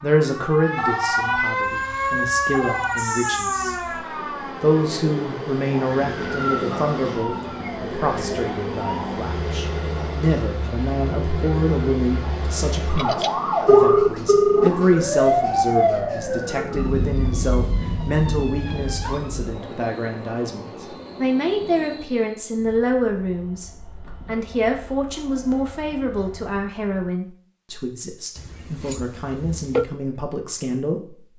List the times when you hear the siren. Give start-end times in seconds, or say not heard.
0.0-19.6.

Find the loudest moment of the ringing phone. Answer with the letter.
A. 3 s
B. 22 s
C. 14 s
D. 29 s
C.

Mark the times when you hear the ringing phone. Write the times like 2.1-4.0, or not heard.
0.8-3.0, 12.9-14.7, 28.4-29.9.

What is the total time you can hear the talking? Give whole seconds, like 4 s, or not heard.
30 s.